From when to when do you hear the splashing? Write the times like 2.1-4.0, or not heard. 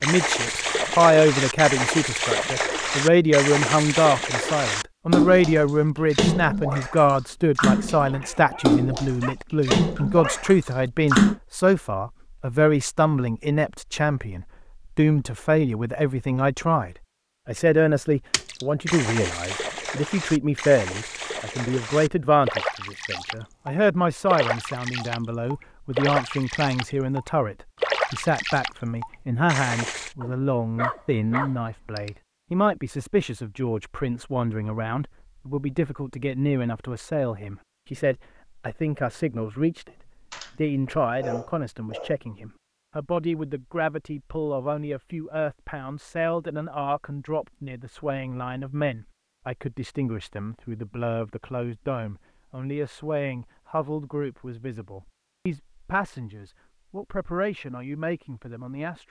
0.0-11.3, 18.3-30.1.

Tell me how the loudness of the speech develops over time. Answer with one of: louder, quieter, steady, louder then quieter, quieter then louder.
quieter.